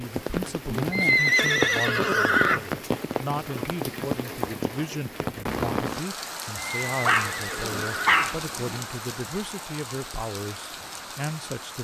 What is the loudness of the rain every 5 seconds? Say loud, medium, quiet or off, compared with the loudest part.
loud, loud, medium.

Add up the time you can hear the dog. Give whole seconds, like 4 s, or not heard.
2 s.